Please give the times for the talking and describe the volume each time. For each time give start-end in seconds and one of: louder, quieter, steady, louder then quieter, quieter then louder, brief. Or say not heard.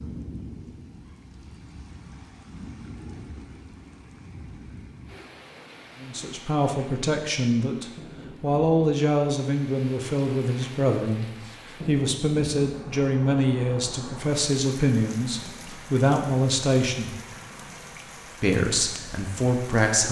6.0-17.1 steady
18.4-20.0 brief.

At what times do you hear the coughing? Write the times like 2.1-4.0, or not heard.
not heard.